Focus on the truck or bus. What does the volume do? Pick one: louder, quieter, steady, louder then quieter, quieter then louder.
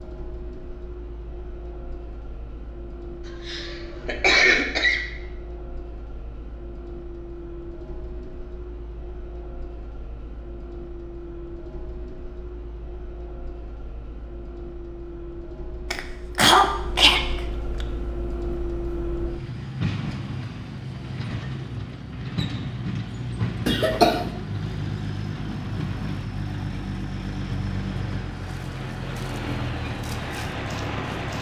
louder.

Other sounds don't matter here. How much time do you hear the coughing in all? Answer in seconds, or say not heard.
4 s.